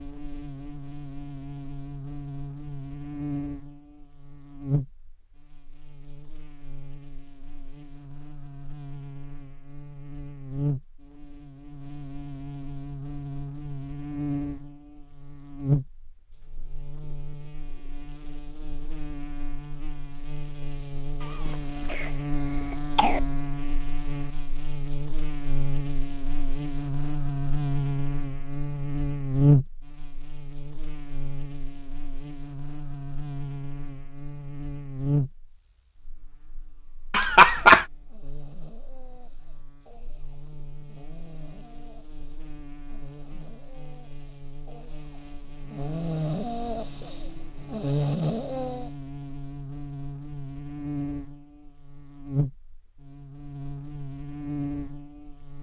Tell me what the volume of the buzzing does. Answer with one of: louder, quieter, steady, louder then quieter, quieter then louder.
louder then quieter.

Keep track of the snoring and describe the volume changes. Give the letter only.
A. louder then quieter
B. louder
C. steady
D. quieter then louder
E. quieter
B.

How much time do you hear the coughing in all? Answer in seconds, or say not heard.
2 s.